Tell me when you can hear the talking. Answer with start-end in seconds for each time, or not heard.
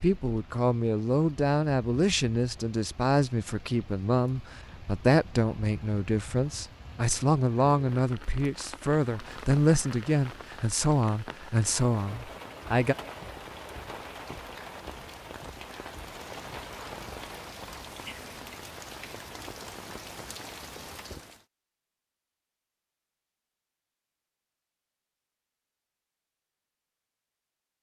0.0-12.9.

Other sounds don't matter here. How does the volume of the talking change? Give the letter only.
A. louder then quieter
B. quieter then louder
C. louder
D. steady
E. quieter
D.